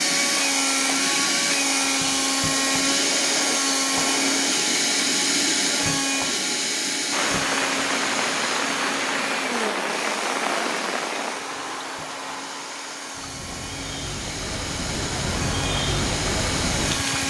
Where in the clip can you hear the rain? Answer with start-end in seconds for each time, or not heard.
7.1-17.2.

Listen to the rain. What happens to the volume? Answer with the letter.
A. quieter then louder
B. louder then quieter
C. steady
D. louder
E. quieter
A.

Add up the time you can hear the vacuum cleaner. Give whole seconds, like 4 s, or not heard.
17 s.